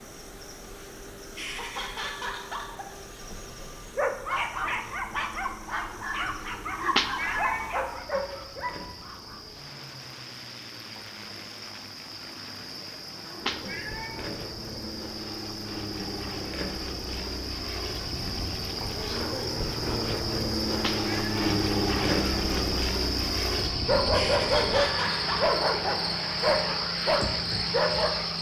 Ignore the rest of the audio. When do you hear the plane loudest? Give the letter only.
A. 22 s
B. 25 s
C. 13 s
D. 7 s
A.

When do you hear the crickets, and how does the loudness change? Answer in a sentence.
You can hear the crickets from 0.0 to 28.3 s, getting louder.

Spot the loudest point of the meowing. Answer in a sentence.
The volume of the meowing peaks at 7 seconds.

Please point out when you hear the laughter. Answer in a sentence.
The laughter can be heard from 1.4 to 3.4 s and from 24.1 to 25.4 s.